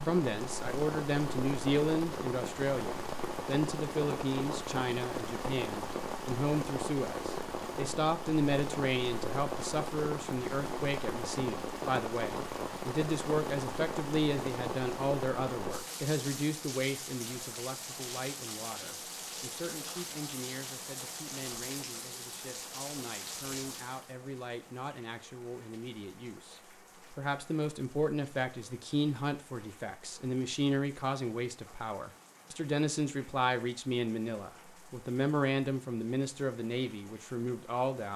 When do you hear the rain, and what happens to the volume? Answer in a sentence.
The rain can be heard from 0.0 to 38.1 s, getting quieter.